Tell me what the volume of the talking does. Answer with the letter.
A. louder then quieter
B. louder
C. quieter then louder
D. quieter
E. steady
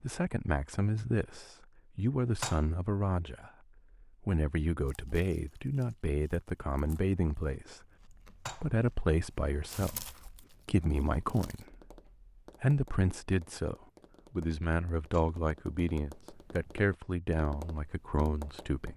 E.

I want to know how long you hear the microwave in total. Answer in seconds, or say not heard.
not heard.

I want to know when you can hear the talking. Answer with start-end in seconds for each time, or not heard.
0.0-7.8, 8.5-11.9, 12.6-18.9.